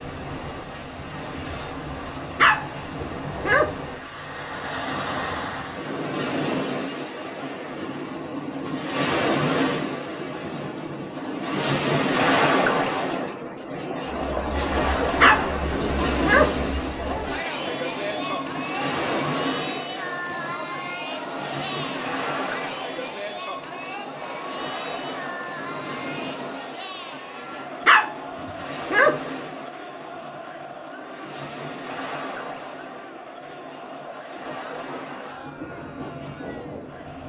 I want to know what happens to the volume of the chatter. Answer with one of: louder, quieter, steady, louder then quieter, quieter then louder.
quieter.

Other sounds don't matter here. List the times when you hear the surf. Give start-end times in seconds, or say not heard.
0.0-37.2.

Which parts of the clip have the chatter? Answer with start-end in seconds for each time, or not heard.
14.2-37.2.